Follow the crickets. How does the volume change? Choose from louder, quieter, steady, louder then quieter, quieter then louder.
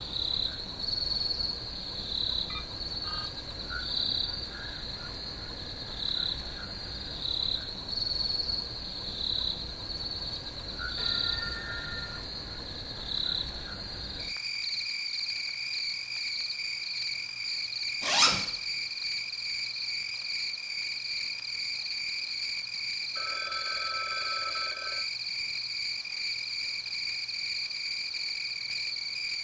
steady.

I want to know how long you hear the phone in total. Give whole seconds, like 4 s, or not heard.
4 s.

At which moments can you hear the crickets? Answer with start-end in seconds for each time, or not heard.
0.0-29.3.